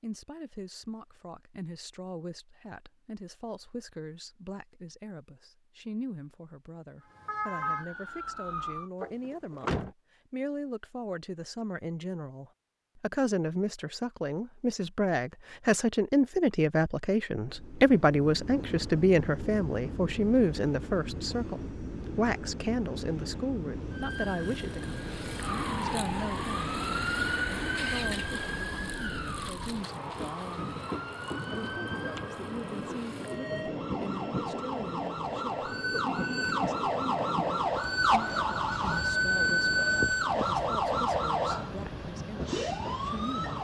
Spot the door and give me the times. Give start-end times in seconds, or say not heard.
9.0-9.9.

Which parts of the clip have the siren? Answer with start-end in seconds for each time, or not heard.
7.0-8.9, 23.9-43.5.